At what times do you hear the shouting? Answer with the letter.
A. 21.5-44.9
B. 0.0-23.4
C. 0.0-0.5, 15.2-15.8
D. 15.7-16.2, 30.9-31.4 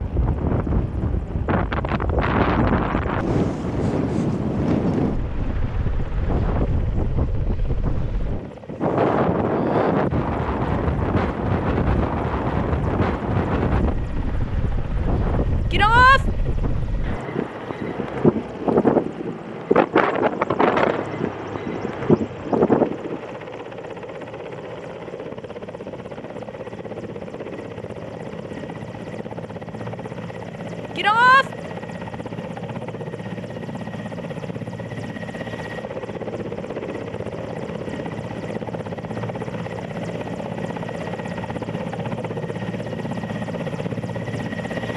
D.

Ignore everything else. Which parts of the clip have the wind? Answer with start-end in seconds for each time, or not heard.
0.0-23.4.